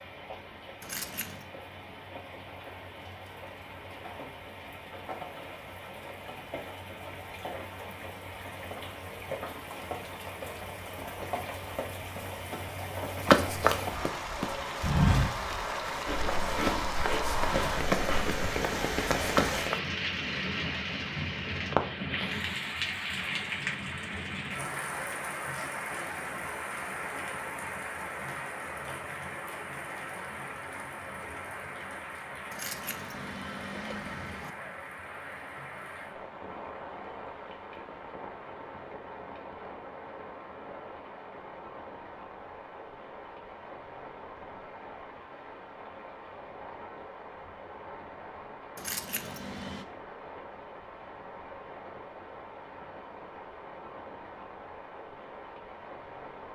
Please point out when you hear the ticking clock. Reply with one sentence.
The ticking clock can't be heard in this clip.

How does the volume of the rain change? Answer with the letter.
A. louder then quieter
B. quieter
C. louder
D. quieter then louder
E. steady
A.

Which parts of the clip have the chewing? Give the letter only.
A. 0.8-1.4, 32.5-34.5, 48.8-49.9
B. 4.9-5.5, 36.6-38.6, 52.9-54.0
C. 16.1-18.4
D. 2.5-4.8
C.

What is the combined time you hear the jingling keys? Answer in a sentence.
The jingling keys can be heard for 4 seconds in total.